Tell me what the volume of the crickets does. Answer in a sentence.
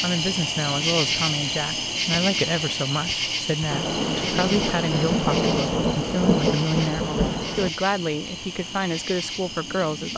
The loudness of the crickets goes down.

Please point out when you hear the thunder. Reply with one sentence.
The thunder can be heard from 3.7 to 7.7 s.